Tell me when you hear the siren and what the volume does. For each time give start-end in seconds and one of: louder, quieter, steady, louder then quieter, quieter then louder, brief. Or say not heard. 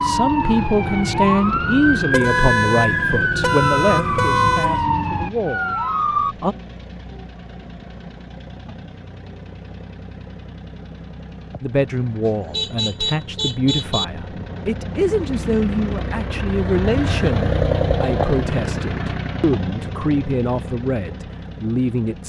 0.0-6.3 steady.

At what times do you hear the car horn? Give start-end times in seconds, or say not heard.
2.1-4.8, 12.2-14.1.